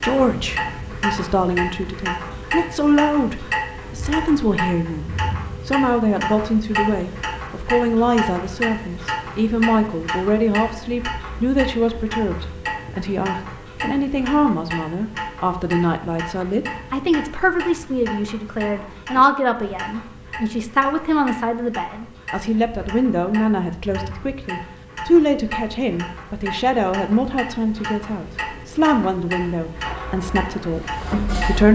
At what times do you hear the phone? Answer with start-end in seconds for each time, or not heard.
not heard.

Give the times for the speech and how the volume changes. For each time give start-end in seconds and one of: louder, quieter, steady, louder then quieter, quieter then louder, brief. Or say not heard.
0.0-31.6 steady.